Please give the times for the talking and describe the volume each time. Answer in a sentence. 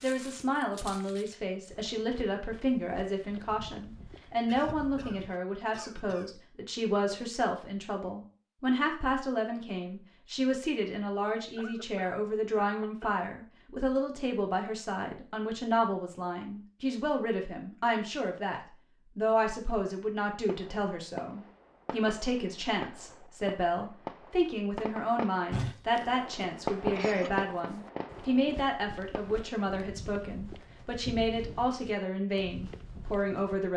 You can hear the talking from 0.0 to 33.7 s, at a steady volume.